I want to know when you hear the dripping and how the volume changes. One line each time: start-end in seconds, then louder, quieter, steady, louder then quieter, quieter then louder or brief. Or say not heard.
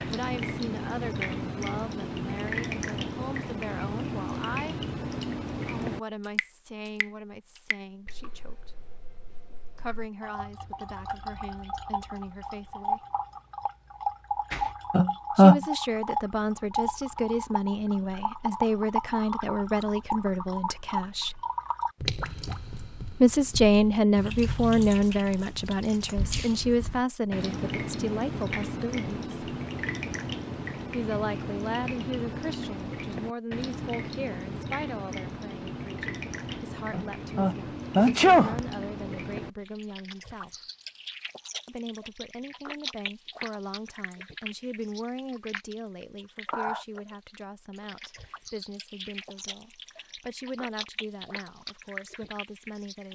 0.0-53.0 quieter.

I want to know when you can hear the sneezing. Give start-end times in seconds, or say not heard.
14.5-15.6, 36.9-38.6.